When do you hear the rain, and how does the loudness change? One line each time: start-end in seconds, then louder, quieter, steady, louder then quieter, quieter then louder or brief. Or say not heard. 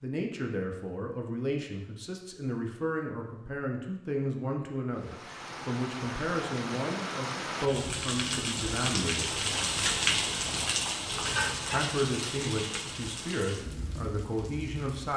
5.0-15.1 louder then quieter.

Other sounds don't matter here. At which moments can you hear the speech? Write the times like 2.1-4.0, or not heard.
0.0-9.4, 11.6-15.1.